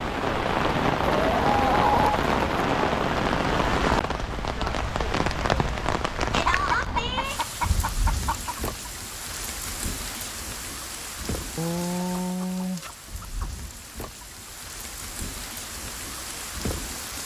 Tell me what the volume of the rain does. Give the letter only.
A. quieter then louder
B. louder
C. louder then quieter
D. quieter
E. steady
D.